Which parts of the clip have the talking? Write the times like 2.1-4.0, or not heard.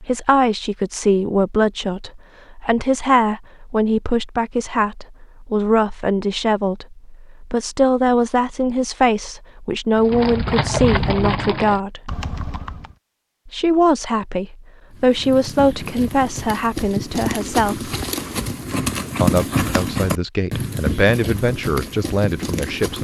0.0-12.1, 13.4-17.9, 19.2-22.9.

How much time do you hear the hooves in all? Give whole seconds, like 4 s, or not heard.
11 s.